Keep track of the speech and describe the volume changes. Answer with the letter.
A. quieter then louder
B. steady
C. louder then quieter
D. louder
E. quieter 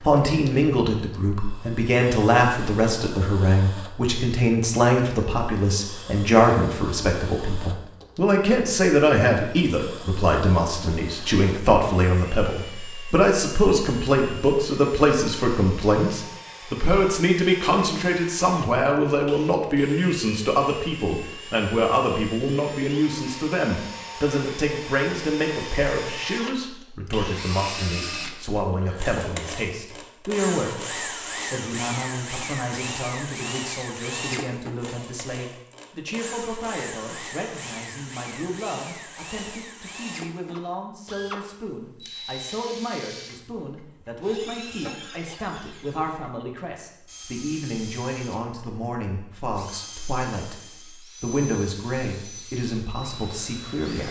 E.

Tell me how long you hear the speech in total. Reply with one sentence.
You can hear the speech for 54 seconds altogether.